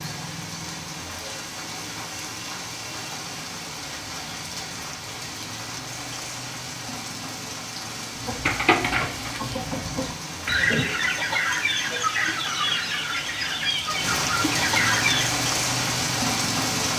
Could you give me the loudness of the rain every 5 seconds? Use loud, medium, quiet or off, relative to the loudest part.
medium, medium, medium, loud.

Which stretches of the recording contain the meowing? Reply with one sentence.
The meowing can't be heard in this clip.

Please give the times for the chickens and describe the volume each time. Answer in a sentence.
The chickens can be heard from 8.2 to 15.3 s, at a steady volume.